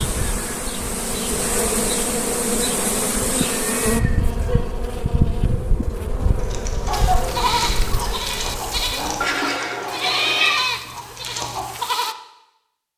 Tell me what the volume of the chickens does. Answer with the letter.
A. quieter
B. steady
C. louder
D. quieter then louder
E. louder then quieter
A.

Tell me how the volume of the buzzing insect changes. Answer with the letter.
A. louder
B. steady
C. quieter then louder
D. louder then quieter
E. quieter
E.